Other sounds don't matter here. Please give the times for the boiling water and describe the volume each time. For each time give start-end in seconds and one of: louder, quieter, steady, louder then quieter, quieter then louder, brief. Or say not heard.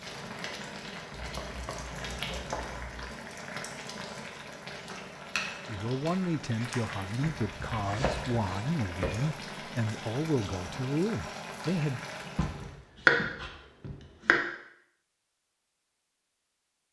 0.0-12.8 steady.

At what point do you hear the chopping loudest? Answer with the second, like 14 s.
13 s.